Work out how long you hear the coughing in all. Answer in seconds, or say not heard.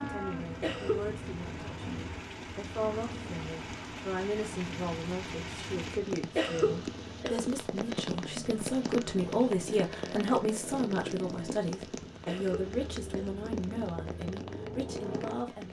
3 s.